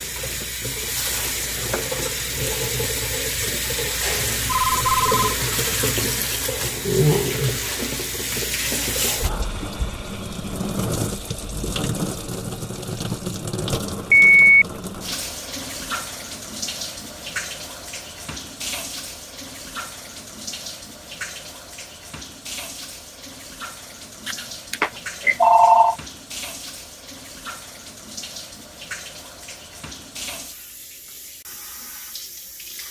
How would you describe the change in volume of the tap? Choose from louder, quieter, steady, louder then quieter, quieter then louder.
quieter.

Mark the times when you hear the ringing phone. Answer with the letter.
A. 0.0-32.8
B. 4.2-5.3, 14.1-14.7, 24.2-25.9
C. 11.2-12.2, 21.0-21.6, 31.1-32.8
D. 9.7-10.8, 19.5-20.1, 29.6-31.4
B.